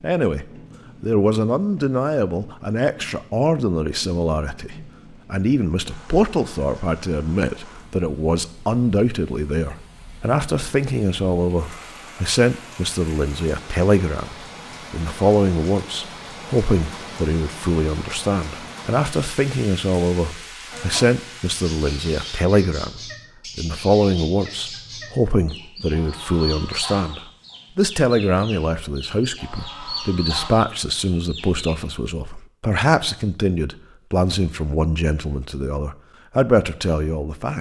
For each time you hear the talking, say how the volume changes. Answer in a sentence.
The talking can be heard from 0.0 to 37.5 s, at a steady volume.